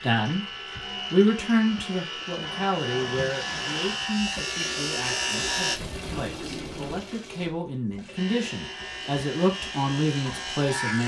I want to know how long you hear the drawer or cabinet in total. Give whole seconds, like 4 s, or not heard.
3 s.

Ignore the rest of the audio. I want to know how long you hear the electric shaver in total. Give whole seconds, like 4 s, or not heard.
9 s.